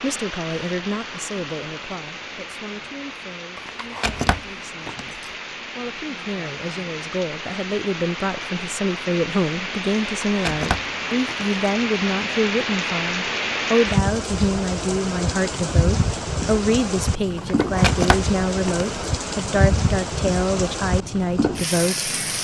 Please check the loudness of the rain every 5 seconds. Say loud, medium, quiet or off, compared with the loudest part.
medium, medium, loud, loud, loud.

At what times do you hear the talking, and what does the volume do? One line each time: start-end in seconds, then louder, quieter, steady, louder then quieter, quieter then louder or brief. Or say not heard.
0.0-22.1 louder.